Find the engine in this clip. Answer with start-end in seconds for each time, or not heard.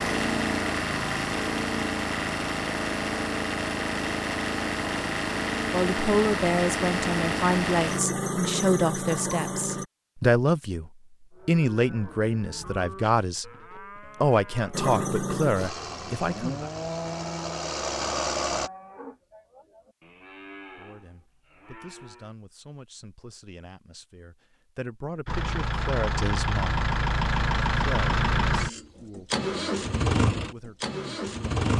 0.0-9.8, 14.7-18.7, 25.2-31.7.